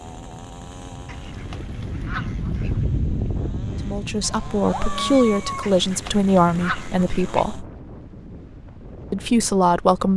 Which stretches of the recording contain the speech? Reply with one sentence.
The speech can be heard from 3.9 to 7.7 s and from 9.1 to 10.1 s.